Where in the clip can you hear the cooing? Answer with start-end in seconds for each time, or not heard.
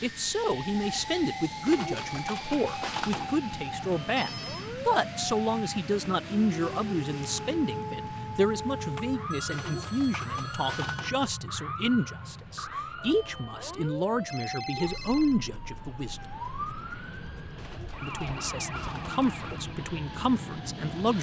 1.6-3.4, 9.5-11.2, 17.6-19.6.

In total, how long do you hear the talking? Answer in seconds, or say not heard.
19 s.